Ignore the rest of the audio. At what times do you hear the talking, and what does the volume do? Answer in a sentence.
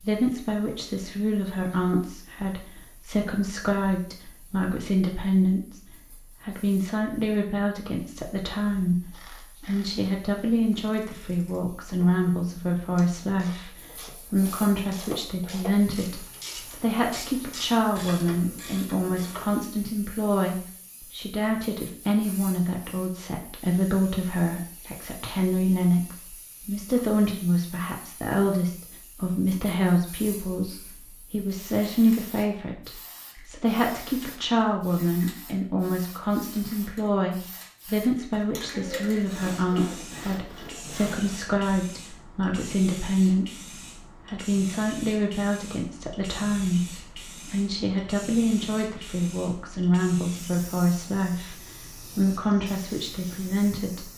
The talking can be heard from 0.0 to 54.1 s, at a steady volume.